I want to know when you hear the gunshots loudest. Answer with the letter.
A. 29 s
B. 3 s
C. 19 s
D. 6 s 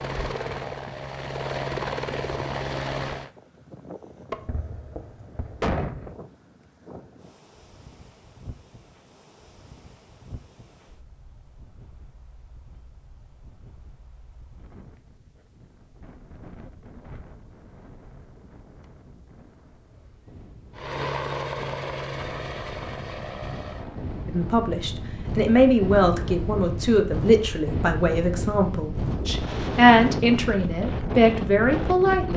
D.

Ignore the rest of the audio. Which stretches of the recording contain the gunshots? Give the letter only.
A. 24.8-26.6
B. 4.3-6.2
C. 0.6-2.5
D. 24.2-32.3
B.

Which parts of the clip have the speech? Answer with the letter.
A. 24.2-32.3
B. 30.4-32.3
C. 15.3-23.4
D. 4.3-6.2
A.